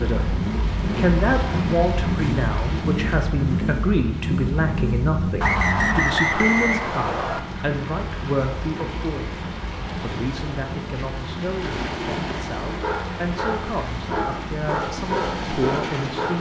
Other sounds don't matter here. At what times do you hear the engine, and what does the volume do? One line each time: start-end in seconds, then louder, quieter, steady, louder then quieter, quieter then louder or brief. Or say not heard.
0.0-16.1 quieter.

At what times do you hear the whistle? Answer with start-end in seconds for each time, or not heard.
5.4-7.4.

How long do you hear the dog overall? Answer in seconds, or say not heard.
4 s.